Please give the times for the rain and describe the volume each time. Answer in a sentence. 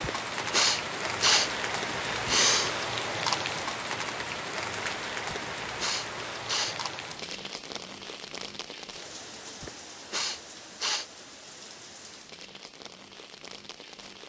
The rain can be heard from 0.0 to 14.2 s, getting quieter.